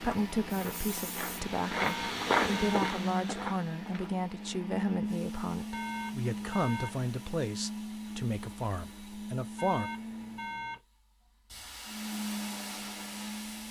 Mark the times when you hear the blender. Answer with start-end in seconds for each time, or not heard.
0.0-10.7, 11.8-13.6.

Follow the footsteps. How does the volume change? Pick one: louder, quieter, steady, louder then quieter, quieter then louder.
louder then quieter.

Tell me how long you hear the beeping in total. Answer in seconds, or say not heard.
4 s.